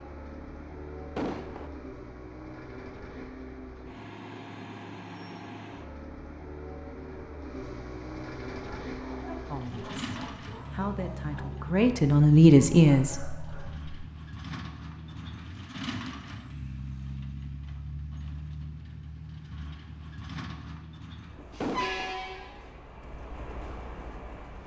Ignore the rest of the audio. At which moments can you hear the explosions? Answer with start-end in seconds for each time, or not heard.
1.1-1.7, 21.6-22.1.